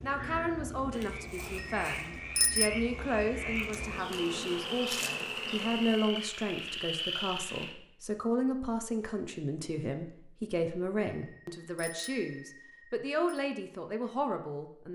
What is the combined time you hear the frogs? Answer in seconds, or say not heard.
8 s.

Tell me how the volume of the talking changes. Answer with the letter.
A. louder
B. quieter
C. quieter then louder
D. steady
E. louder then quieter
D.